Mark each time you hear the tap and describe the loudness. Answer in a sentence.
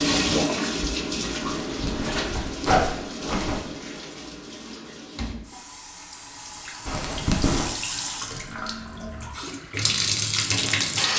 The tap can be heard from 0.0 to 11.1 s, getting quieter then louder.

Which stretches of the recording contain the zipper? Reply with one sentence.
You can hear the zipper from 1.6 to 3.6 s and from 6.8 to 7.7 s.